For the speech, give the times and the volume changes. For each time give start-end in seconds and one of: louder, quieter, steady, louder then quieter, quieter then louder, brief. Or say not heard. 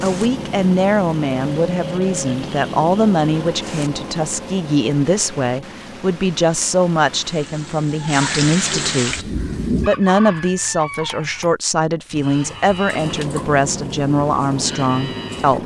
0.0-15.6 steady.